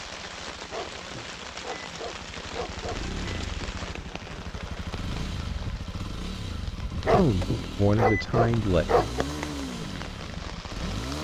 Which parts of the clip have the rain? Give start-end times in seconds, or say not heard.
0.0-11.2.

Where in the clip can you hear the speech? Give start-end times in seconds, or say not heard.
7.2-8.8.